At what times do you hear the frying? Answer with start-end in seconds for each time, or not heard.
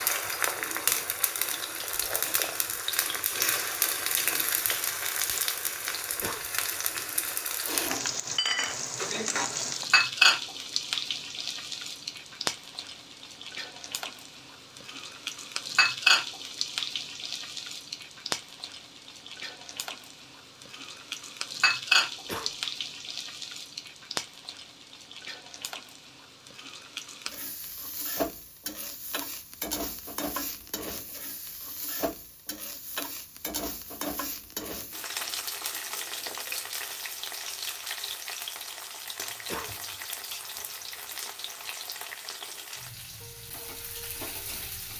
0.0-44.9.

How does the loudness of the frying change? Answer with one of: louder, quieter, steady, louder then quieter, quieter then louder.
quieter.